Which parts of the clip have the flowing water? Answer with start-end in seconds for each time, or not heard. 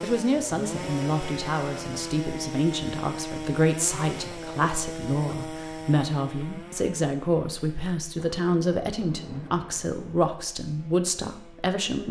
not heard.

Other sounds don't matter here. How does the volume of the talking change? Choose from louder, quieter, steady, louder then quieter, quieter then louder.
steady.